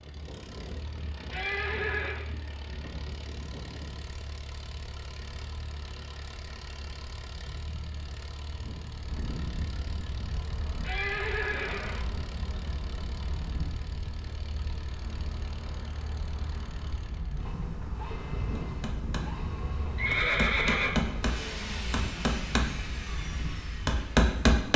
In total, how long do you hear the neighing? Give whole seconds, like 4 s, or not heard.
3 s.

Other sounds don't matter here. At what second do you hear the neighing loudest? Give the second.
20 s.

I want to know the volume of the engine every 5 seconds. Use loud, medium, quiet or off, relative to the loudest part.
medium, medium, medium, loud, loud.